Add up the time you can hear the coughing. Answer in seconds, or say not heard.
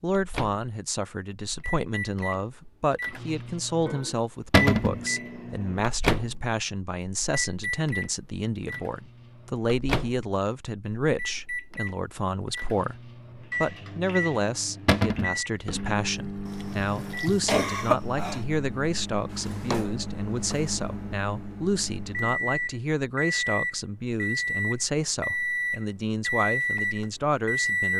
2 s.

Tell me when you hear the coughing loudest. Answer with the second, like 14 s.
18 s.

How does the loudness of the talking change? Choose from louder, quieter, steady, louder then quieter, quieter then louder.
steady.